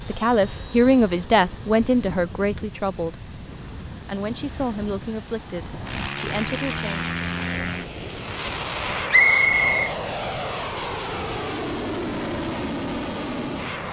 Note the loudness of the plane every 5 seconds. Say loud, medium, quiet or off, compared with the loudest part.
medium, loud, loud.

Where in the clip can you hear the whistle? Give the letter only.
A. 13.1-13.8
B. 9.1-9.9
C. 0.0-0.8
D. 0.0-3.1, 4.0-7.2
B.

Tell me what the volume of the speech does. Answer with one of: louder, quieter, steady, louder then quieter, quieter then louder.
quieter.